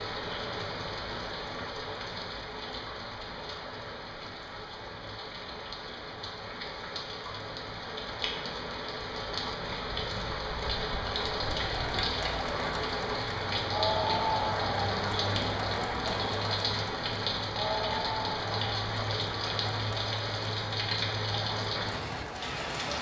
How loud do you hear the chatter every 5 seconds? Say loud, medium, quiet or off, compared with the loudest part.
off, off, loud, loud, medium.